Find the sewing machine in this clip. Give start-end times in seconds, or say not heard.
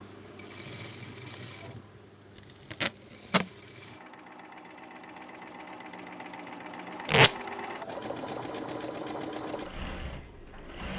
0.0-10.9.